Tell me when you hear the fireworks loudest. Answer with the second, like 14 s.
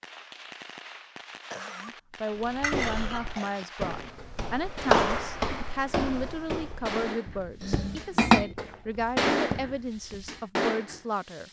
9 s.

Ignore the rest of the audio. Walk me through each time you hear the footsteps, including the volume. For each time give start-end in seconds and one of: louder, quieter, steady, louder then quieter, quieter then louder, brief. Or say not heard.
2.4-10.4 louder then quieter.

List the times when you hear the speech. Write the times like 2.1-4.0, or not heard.
1.7-11.4.